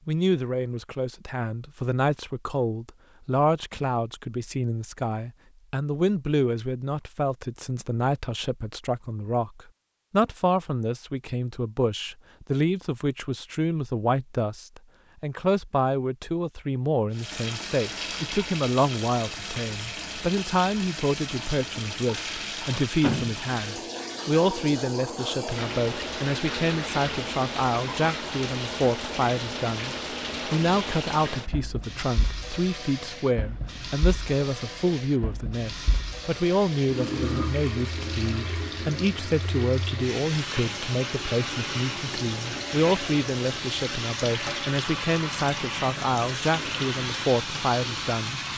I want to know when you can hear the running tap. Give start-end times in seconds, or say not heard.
17.1-48.5.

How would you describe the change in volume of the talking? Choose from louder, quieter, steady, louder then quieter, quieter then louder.
steady.